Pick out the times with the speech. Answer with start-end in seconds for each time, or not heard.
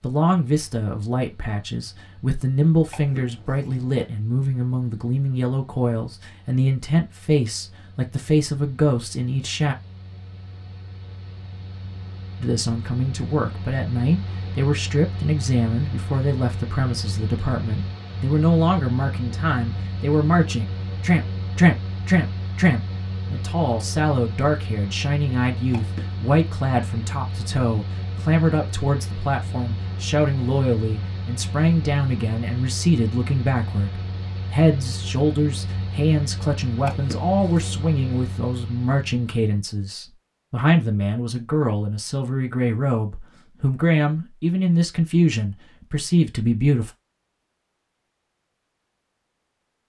0.0-9.8, 12.4-46.9.